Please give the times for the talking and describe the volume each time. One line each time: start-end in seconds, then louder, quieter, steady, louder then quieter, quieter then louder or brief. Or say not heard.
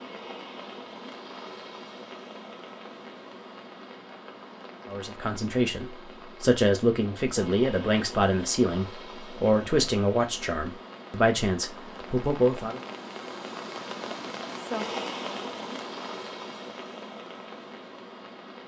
4.8-12.8 steady.